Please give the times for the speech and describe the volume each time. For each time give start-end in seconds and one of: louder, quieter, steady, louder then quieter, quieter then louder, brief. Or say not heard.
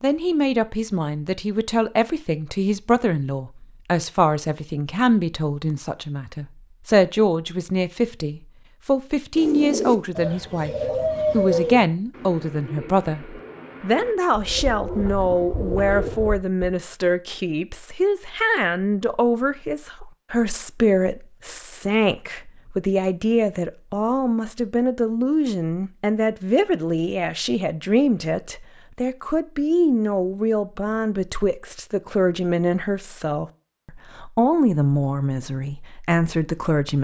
0.0-36.9 steady.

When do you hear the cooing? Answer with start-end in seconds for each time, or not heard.
9.3-16.7.